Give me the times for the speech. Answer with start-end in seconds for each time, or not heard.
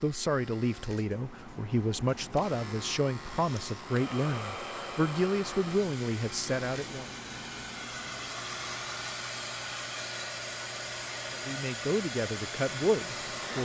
0.0-7.1, 11.3-13.6.